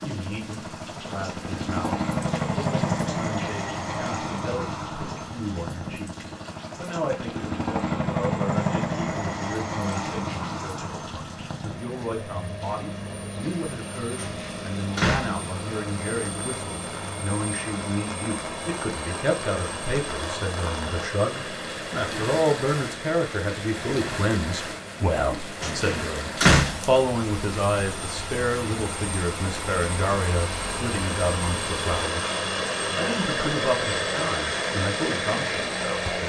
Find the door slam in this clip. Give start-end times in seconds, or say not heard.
14.2-15.4, 25.6-27.0.